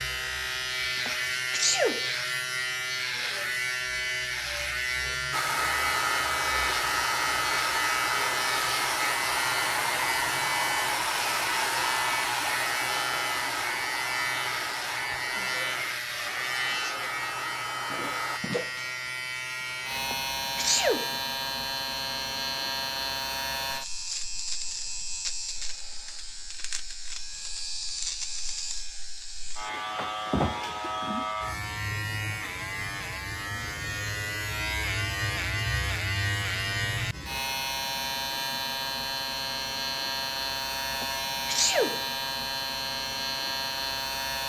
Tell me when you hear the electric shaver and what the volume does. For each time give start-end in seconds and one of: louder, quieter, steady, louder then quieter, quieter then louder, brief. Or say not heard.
0.0-44.4 steady.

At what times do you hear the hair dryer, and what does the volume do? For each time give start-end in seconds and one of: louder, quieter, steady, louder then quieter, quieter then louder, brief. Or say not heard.
5.3-18.4 quieter.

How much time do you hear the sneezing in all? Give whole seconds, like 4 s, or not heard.
3 s.